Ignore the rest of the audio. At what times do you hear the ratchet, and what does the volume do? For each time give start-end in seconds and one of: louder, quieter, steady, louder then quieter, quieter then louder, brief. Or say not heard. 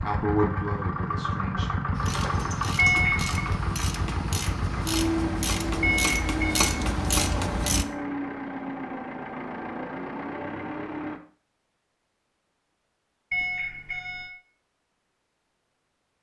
1.9-7.8 louder.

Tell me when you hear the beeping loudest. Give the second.
3 s.